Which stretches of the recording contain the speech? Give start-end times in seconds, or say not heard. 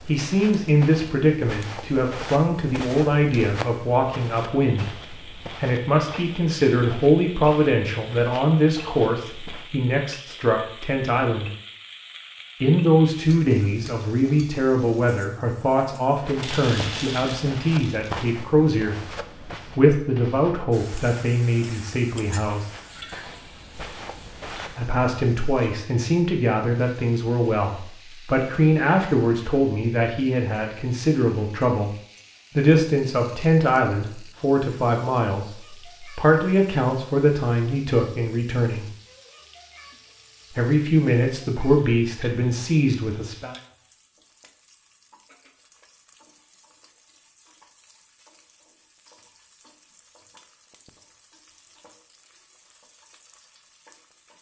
0.0-11.5, 12.6-18.9, 19.8-22.7, 24.8-31.9, 32.5-38.9, 40.5-43.5.